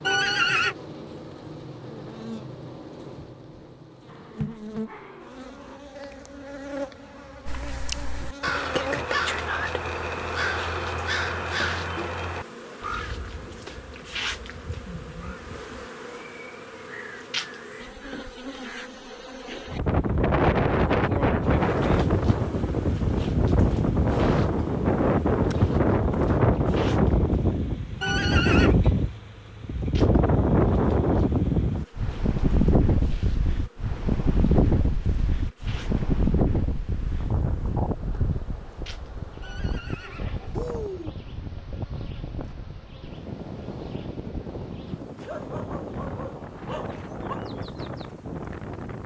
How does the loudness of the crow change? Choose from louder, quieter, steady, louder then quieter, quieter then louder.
quieter.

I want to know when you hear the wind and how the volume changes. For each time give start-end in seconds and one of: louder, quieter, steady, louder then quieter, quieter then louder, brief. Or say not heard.
19.7-49.0 quieter.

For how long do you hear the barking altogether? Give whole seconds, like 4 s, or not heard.
4 s.